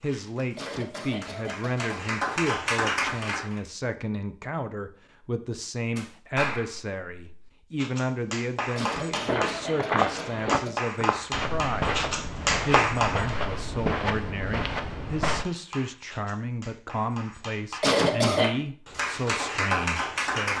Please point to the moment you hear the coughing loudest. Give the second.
18 s.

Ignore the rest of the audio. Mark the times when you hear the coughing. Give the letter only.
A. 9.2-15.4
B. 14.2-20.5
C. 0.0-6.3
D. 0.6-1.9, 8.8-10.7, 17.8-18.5
D.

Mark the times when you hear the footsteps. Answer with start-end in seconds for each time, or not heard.
9.2-15.4.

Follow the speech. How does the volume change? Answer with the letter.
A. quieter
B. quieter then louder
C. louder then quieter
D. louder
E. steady
E.